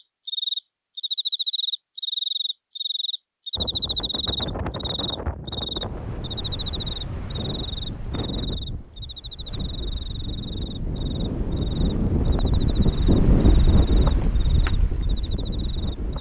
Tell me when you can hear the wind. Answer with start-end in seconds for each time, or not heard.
3.5-16.1.